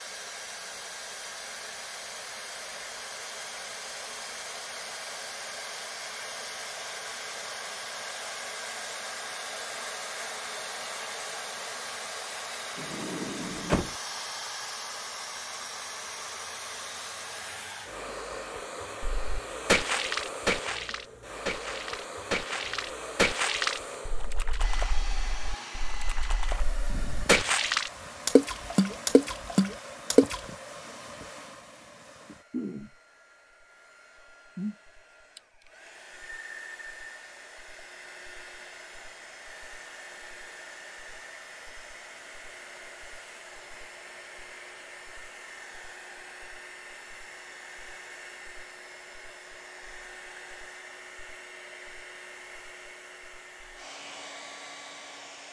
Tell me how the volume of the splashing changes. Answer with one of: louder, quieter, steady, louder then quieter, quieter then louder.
quieter then louder.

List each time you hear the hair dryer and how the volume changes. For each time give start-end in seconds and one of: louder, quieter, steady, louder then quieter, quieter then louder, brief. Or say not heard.
0.0-55.4 quieter.